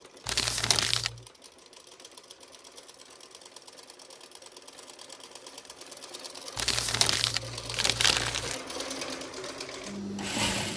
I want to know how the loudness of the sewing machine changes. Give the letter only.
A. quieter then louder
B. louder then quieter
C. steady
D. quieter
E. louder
E.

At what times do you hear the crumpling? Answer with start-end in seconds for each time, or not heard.
0.2-1.2, 6.5-8.6.